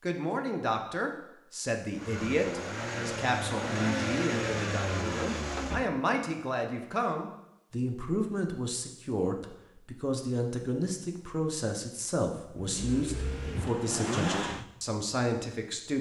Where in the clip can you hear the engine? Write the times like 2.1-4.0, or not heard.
1.9-5.9, 12.6-14.7.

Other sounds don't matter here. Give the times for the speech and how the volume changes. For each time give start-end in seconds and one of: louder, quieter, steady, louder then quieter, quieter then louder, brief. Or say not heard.
0.0-15.9 steady.